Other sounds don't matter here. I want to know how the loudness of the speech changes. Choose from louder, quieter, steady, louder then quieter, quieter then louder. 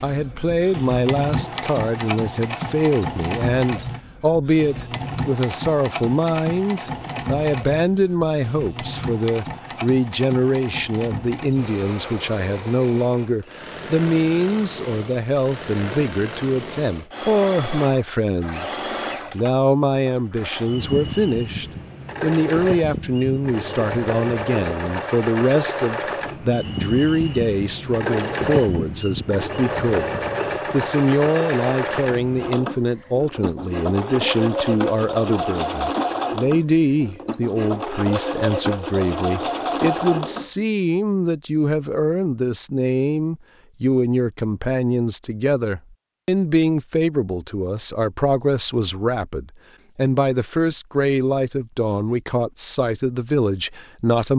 steady.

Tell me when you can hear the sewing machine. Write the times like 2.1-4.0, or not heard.
0.0-40.5.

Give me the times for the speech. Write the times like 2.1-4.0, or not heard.
0.0-18.7, 19.3-54.3.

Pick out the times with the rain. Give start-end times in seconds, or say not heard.
not heard.